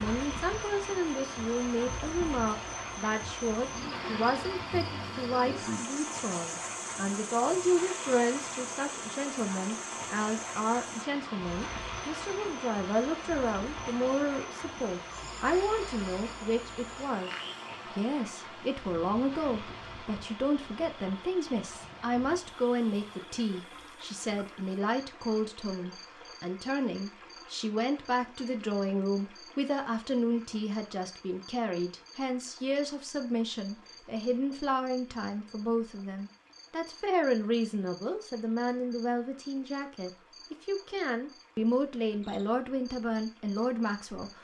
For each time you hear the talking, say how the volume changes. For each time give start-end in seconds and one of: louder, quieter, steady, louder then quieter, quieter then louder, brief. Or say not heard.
0.0-17.3 steady
17.9-44.3 steady.